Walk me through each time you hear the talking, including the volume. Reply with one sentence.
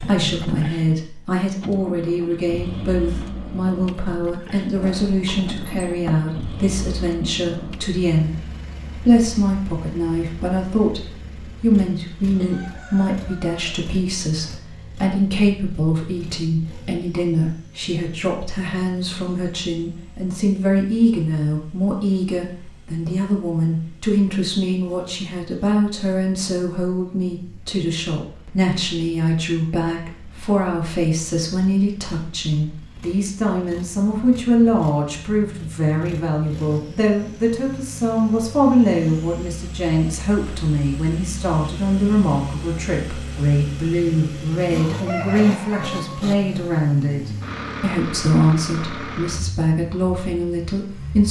You can hear the talking from 0.0 to 51.2 s, at a steady volume.